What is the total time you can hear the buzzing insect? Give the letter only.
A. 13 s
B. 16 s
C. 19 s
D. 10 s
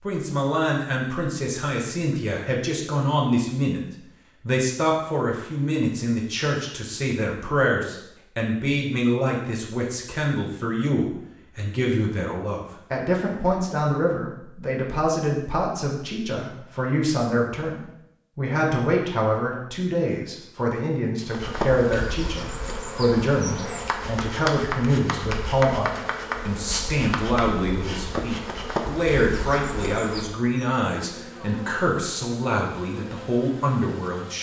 A.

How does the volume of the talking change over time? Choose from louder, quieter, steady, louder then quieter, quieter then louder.
steady.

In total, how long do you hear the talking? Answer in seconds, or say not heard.
34 s.